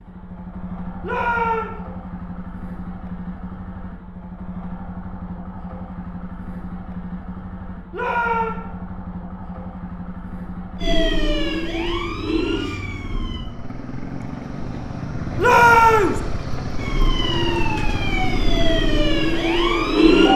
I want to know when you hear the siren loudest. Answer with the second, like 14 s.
20 s.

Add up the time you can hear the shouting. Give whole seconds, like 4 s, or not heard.
2 s.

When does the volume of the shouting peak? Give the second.
16 s.